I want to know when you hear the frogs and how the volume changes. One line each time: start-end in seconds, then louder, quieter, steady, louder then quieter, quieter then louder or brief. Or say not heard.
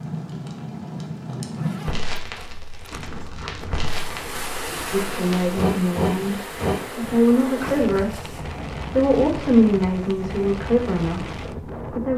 not heard.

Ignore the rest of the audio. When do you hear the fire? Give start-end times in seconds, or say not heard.
0.0-7.3.